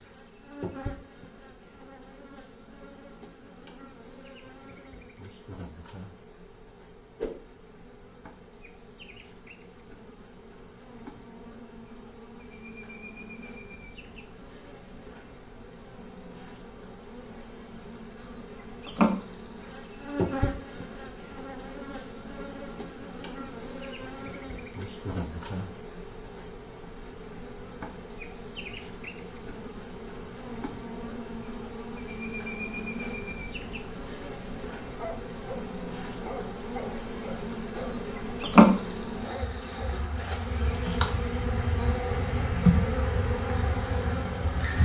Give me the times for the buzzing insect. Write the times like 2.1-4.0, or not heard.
0.0-44.8.